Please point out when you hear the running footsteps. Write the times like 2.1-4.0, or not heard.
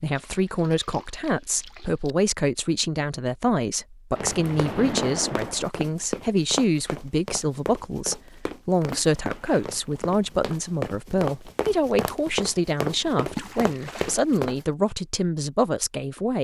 4.2-14.6.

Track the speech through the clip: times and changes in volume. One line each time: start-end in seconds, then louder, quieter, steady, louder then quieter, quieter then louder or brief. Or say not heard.
0.0-16.3 steady.